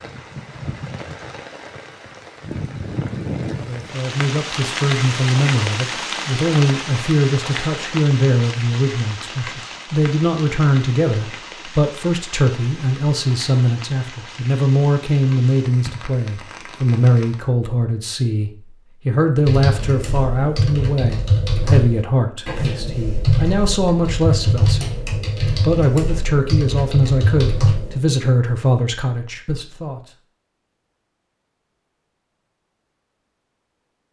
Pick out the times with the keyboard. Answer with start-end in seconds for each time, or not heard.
19.4-27.9.